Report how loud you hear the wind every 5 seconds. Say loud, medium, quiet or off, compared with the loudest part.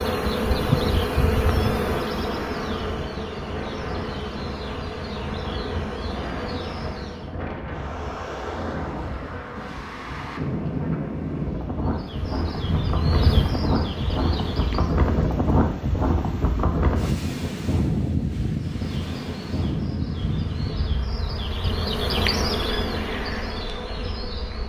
medium, medium, loud, loud, medium.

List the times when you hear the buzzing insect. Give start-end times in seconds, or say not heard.
0.0-7.3, 11.9-14.9, 18.5-24.6.